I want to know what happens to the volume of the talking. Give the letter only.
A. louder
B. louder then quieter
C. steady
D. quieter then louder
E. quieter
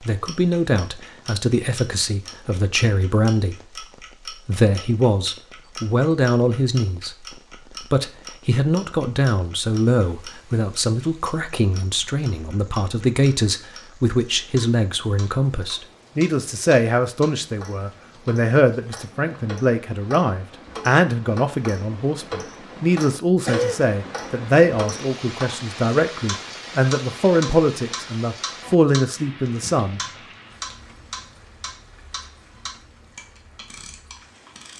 C.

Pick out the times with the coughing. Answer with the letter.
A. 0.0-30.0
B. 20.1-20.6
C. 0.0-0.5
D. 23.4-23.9
D.